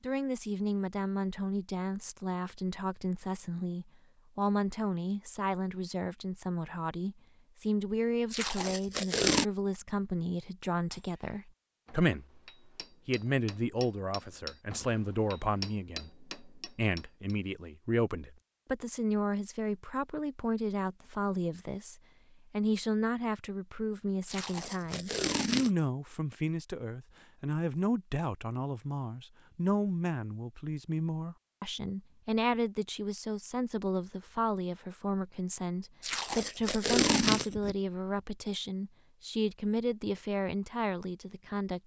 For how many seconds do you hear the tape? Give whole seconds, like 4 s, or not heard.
4 s.